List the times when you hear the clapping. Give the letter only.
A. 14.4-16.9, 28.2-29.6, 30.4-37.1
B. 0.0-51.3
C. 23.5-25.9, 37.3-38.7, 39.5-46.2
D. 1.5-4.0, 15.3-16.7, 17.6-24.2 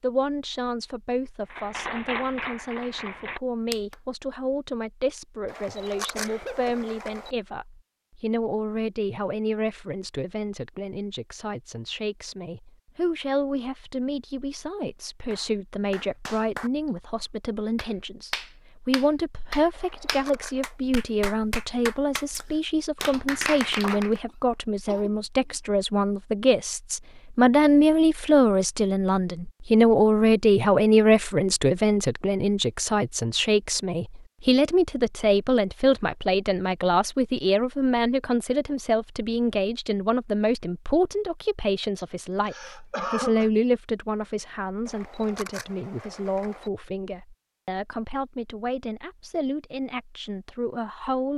D.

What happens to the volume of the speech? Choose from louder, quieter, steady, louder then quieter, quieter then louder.
louder then quieter.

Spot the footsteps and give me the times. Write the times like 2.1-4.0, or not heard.
not heard.